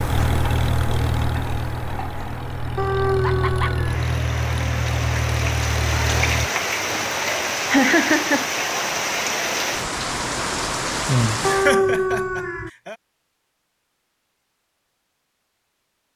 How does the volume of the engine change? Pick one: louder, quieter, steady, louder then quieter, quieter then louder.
quieter then louder.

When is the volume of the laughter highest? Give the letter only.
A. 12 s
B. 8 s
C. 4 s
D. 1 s
B.